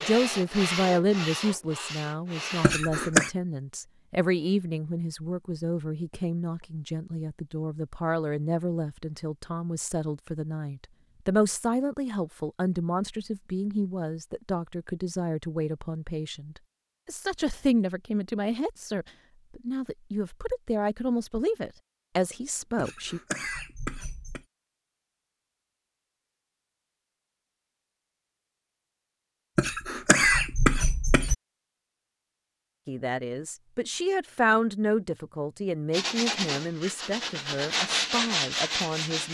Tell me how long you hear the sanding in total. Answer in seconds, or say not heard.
6 s.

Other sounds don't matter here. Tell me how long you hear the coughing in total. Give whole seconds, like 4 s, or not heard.
4 s.